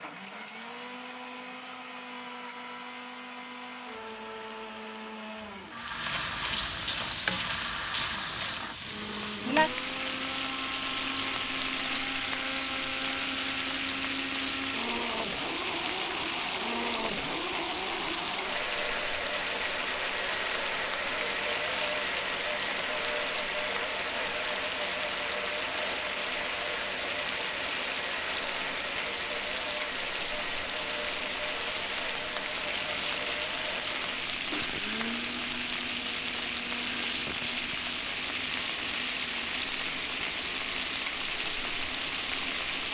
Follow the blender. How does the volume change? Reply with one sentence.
The loudness of the blender goes up, then down.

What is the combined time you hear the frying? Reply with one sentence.
You can hear the frying for 37 seconds altogether.